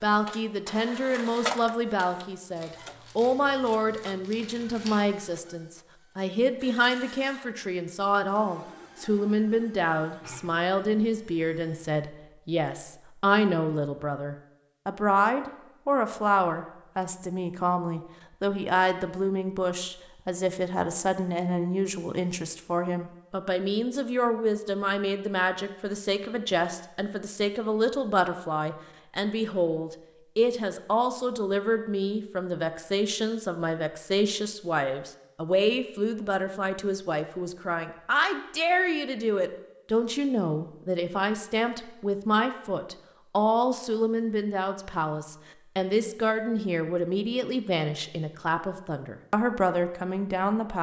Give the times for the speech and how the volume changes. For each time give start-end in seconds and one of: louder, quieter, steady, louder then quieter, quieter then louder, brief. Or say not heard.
0.0-50.7 steady.